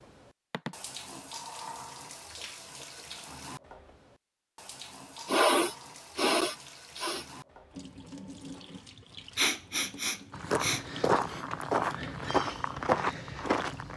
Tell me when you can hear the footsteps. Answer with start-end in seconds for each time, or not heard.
10.3-13.9.